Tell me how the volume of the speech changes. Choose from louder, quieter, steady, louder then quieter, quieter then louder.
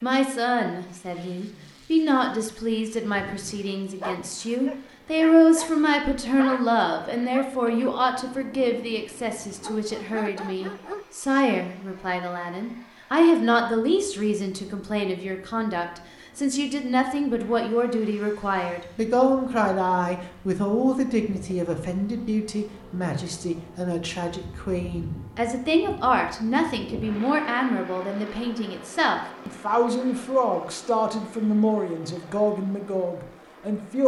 steady.